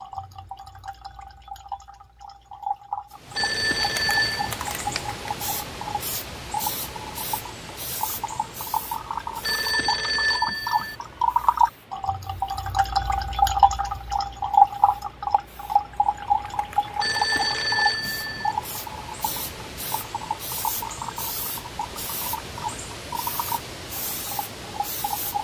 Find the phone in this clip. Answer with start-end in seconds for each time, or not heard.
3.4-4.5, 9.4-10.9, 17.0-18.6.